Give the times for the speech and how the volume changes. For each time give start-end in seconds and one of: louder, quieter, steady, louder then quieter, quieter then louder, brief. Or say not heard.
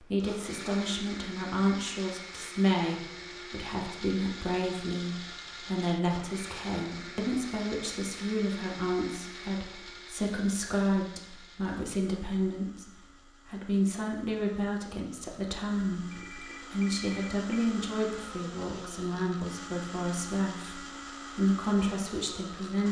0.0-22.8 steady.